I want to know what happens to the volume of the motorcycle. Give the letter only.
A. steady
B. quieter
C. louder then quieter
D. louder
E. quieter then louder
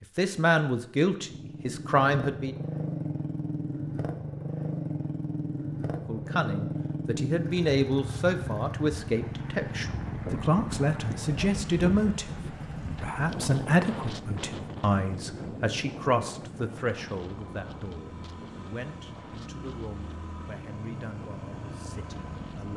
B.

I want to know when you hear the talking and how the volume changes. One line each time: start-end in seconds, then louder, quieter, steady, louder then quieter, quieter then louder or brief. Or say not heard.
0.1-2.5 brief
6.0-22.7 quieter.